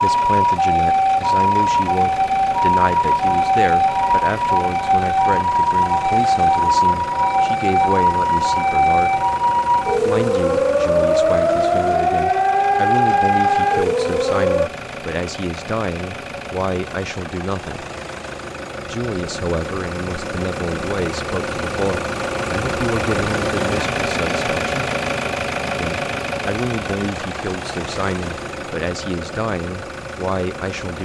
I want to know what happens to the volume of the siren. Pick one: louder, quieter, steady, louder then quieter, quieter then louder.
steady.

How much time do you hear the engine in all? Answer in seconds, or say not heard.
31 s.